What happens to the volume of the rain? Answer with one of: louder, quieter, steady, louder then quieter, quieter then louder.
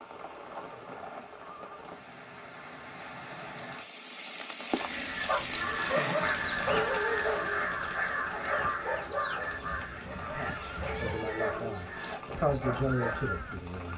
louder then quieter.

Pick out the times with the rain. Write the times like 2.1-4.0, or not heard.
0.0-13.9.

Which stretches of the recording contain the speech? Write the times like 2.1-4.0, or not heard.
10.3-13.9.